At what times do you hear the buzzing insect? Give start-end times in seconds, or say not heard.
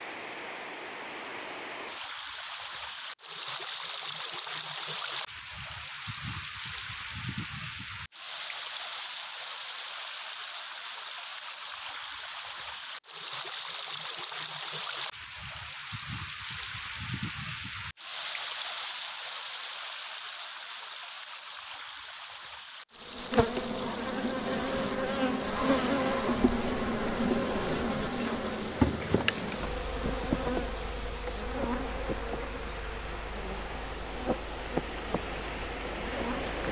23.0-36.6.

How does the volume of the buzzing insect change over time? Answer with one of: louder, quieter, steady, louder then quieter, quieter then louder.
quieter.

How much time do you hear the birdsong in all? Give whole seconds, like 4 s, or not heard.
not heard.